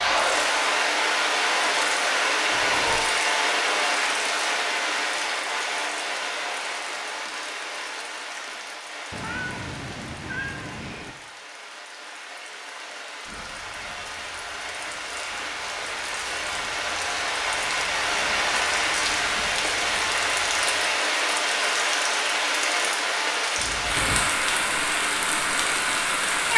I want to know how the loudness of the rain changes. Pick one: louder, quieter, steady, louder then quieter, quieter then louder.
quieter then louder.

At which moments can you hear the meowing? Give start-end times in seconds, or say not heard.
2.5-3.1, 9.1-11.2, 23.6-24.2.